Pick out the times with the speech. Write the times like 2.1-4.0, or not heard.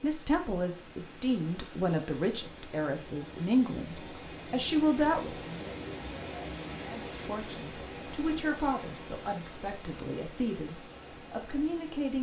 0.0-5.7, 6.8-12.1.